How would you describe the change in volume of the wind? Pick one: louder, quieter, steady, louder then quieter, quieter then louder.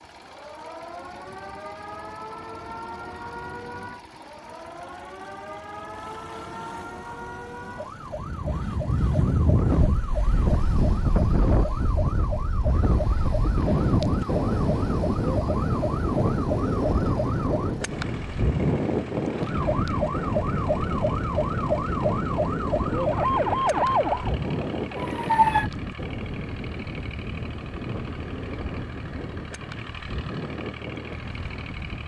quieter.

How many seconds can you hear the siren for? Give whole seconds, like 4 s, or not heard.
24 s.